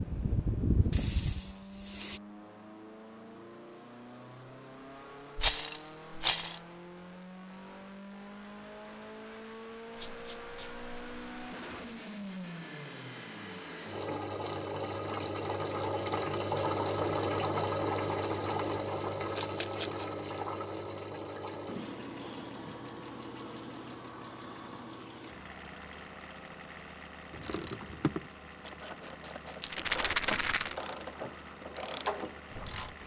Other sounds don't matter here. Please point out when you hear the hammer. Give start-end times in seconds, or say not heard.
not heard.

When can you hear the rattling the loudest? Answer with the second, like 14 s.
6 s.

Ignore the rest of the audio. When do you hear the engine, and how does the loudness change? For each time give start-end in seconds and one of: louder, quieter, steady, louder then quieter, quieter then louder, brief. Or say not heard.
0.0-33.0 louder then quieter.